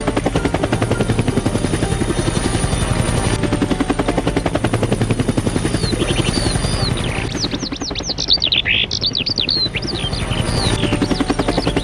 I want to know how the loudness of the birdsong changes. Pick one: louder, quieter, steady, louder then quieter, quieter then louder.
louder then quieter.